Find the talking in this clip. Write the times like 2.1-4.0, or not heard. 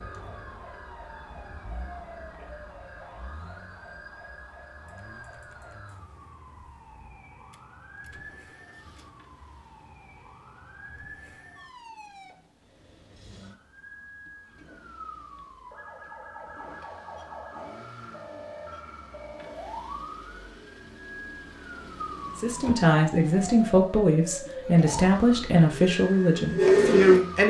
22.4-27.4.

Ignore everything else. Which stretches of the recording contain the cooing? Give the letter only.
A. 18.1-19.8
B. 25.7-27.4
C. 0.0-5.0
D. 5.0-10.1
B.